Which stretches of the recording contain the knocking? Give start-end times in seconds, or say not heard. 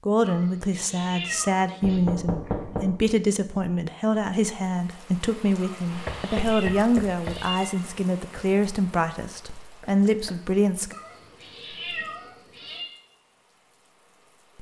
1.8-3.0, 6.0-7.5, 9.8-10.4.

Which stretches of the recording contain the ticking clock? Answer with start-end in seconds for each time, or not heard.
not heard.